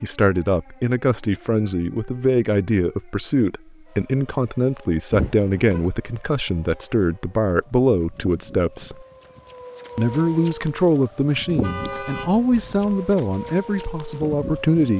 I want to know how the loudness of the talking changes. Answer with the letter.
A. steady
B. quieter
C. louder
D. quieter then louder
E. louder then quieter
A.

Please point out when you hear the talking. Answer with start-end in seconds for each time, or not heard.
0.0-9.1, 9.9-14.9.